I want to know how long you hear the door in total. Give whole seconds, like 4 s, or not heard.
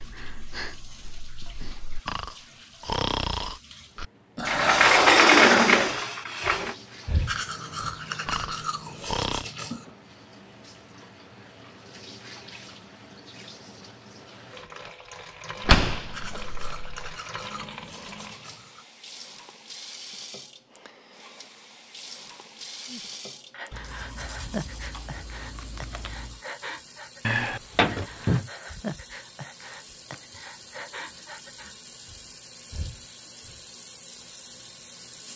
5 s.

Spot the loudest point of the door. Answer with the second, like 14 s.
5 s.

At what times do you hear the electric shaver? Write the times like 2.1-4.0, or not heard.
not heard.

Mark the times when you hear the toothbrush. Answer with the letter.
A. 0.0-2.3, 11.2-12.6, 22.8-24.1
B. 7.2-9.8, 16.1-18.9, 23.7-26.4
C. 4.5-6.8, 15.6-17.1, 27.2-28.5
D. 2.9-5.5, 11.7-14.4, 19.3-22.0
B.